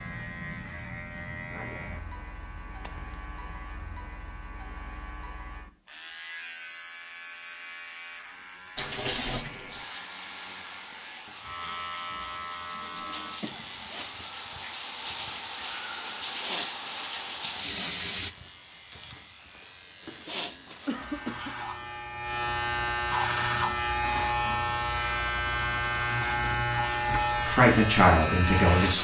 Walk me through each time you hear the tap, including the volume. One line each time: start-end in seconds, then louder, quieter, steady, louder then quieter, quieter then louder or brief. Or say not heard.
8.8-18.3 quieter then louder.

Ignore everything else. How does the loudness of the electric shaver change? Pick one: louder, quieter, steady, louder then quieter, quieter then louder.
louder.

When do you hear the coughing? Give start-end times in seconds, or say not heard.
2.6-3.8, 12.7-14.0, 20.1-21.6.